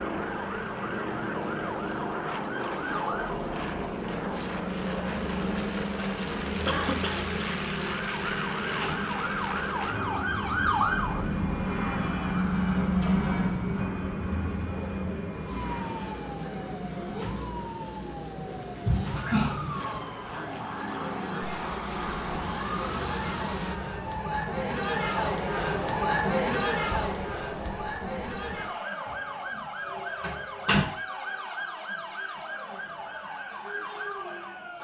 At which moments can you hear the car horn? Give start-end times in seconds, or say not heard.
not heard.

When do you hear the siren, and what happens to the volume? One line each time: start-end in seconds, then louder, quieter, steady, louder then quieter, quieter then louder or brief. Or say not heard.
0.0-34.7 louder then quieter.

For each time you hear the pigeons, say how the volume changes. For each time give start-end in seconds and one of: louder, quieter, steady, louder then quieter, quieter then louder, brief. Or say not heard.
not heard.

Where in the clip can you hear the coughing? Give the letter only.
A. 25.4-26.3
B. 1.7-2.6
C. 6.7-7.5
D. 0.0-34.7
C.